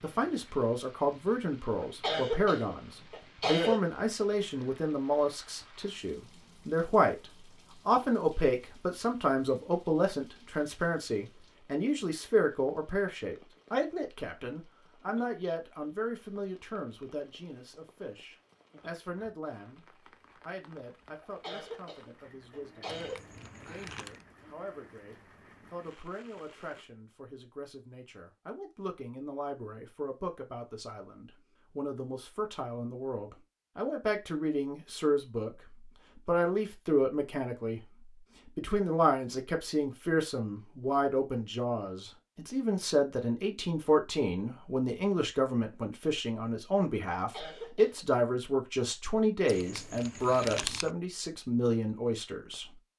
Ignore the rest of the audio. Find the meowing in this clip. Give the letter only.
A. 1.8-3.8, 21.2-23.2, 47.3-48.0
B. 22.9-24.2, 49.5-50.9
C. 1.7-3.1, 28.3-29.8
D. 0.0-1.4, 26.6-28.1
B.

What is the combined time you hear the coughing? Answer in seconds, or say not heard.
5 s.